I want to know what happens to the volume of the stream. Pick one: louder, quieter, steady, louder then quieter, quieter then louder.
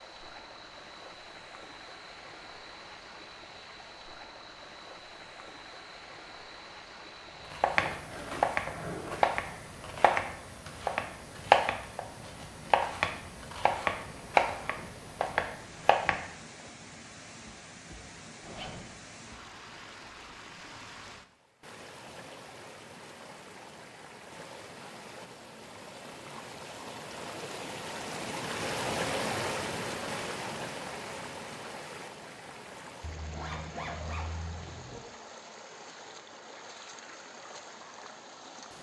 louder then quieter.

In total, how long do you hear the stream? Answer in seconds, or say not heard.
39 s.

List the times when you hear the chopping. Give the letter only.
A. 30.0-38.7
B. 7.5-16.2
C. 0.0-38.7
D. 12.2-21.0
B.